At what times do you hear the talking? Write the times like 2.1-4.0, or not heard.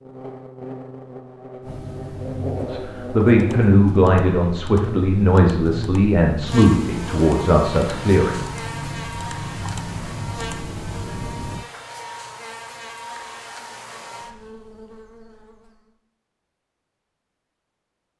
2.4-8.4.